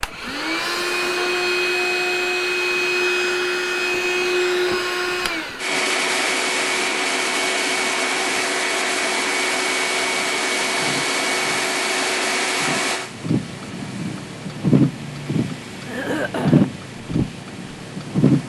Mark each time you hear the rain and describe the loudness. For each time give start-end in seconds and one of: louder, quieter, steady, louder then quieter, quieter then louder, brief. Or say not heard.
0.0-18.4 louder.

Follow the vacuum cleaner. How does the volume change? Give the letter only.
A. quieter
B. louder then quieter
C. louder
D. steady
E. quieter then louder
A.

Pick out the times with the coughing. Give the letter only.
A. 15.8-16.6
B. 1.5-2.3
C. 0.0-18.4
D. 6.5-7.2
A.